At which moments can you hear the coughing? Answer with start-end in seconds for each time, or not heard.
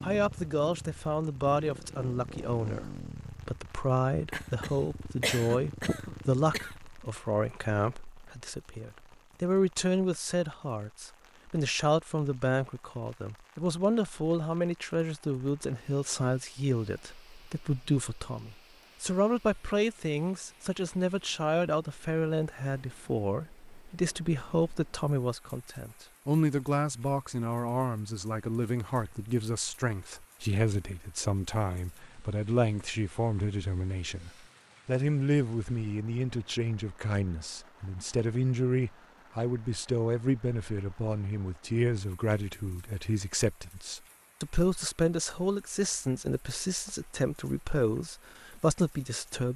4.3-6.8.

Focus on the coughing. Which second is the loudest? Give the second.
5 s.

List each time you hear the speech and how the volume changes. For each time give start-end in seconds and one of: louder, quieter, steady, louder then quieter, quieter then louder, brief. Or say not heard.
0.0-49.5 steady.